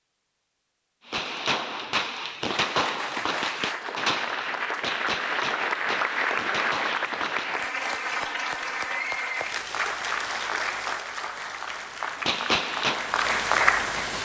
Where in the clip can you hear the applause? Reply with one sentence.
The applause can be heard from 2.5 to 14.2 s.